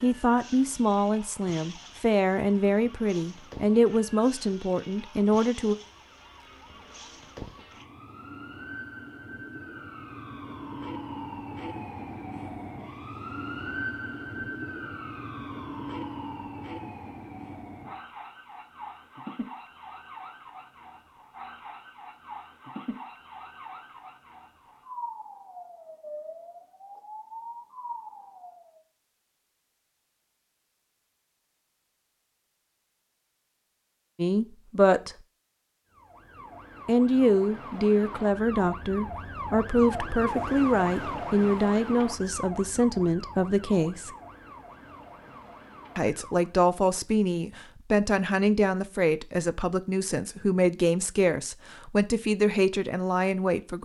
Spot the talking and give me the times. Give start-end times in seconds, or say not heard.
0.0-5.8, 34.1-35.1, 36.9-44.1, 46.0-53.8.